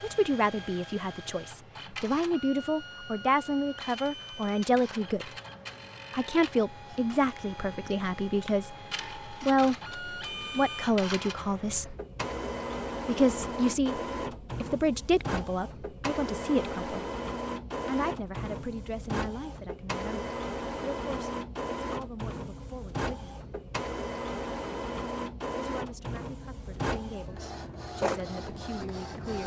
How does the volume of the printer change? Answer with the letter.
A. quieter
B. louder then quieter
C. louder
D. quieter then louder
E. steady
C.